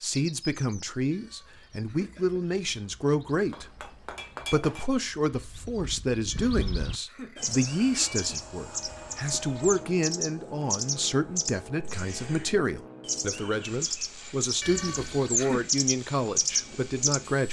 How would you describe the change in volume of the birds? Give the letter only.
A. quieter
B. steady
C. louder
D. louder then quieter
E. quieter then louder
C.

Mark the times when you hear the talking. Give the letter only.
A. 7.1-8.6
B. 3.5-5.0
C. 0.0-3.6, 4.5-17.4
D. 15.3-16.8
C.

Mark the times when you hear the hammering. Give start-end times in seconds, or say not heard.
3.5-5.0.